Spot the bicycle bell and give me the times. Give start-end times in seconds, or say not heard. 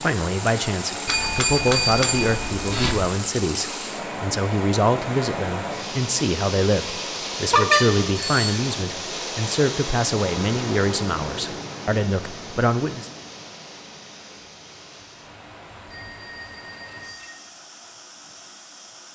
1.1-3.1, 7.5-8.6, 15.8-17.4.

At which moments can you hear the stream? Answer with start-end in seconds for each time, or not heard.
0.0-19.1.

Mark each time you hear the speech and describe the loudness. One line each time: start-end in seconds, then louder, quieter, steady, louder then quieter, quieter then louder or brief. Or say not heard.
0.0-13.1 steady.